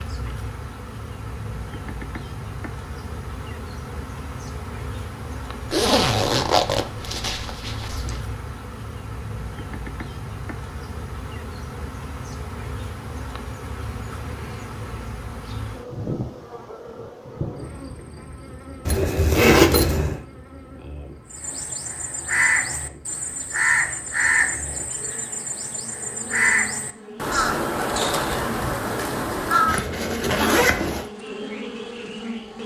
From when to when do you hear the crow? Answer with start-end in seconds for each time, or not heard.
21.3-29.8.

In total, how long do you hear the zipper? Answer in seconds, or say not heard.
5 s.